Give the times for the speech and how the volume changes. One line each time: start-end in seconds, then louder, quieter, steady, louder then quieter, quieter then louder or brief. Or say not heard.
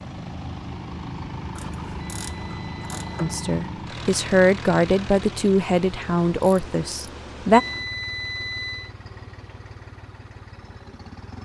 3.2-7.6 louder then quieter.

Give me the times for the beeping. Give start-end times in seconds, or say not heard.
2.0-3.4, 7.5-8.9.